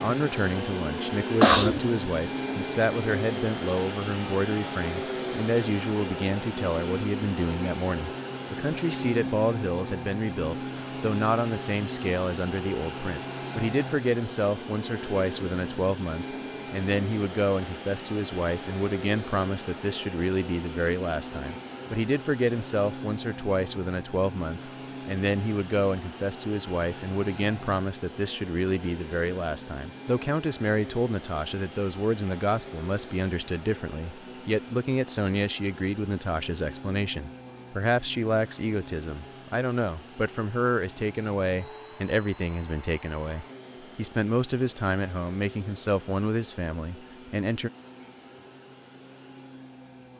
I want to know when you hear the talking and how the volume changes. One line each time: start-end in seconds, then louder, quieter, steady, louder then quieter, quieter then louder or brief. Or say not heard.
0.0-47.7 steady.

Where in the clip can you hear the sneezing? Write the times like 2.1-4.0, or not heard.
1.4-1.8.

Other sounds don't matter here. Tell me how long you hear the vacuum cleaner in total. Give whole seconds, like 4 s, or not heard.
50 s.